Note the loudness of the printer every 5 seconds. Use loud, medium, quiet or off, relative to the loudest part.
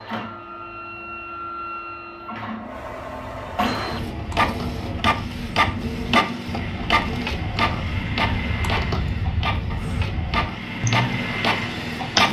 medium, loud, loud.